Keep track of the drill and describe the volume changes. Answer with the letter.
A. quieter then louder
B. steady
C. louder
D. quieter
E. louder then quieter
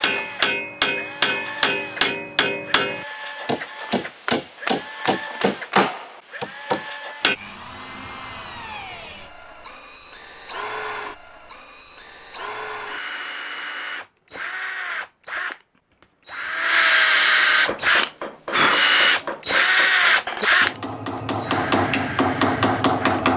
C.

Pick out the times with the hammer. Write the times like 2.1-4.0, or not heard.
0.0-7.3, 17.6-23.3.